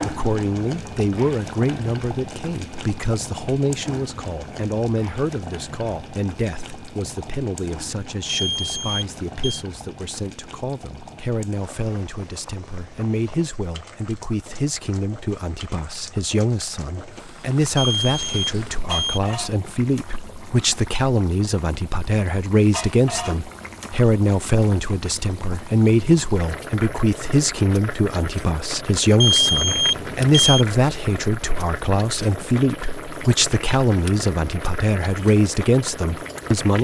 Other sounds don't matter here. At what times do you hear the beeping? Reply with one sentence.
You can hear the beeping from 8.2 to 9.7 s, from 17.8 to 19.2 s and from 29.2 to 30.6 s.